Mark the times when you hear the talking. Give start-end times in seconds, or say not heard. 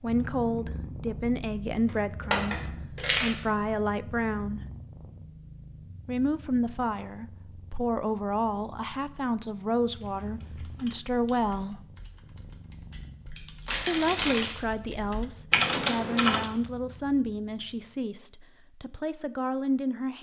0.0-4.6, 6.0-11.8, 13.8-20.1.